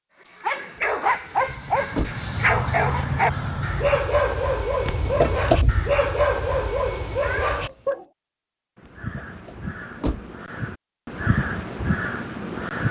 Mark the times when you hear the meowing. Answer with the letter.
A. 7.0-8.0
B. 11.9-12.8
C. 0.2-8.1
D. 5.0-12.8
A.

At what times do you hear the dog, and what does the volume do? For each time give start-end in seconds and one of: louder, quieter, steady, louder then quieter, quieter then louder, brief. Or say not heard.
0.2-8.1 steady.